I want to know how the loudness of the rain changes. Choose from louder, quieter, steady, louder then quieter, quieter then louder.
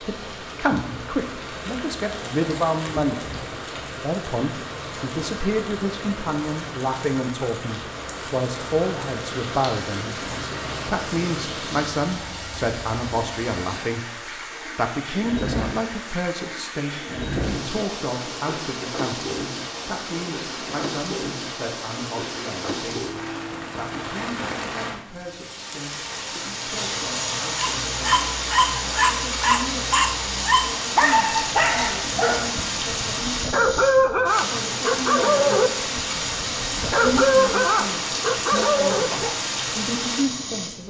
louder.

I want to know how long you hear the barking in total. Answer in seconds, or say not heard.
12 s.